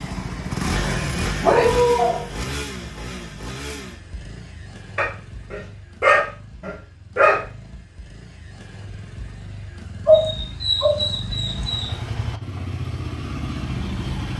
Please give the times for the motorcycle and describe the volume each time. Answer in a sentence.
You can hear the motorcycle from 0.0 to 14.3 s, getting quieter then louder.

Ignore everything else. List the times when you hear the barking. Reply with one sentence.
You can hear the barking from 0.8 to 2.2 s, from 5.0 to 7.4 s and from 10.1 to 11.9 s.